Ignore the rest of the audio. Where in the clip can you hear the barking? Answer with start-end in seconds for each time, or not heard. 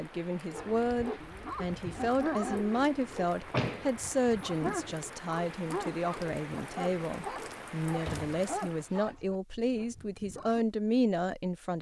0.5-10.7.